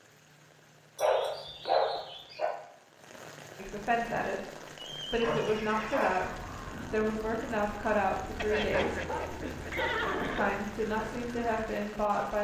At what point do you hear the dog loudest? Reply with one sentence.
The volume of the dog peaks at 2 seconds.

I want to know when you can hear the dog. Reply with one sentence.
The dog can be heard from 0.9 to 2.5 s, from 5.2 to 6.3 s and from 8.6 to 10.6 s.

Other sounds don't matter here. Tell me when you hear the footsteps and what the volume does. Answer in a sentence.
The footsteps can't be heard in this clip.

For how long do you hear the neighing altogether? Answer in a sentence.
You can hear the neighing for 4 seconds altogether.